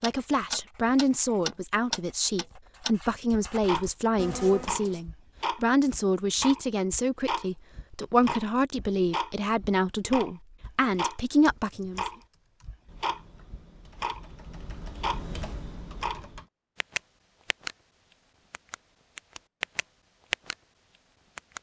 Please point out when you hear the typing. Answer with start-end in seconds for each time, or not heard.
10.6-16.5.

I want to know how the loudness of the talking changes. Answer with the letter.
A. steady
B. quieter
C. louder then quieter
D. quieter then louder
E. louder
A.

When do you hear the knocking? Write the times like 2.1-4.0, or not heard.
not heard.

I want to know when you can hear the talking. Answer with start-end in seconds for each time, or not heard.
0.0-12.1.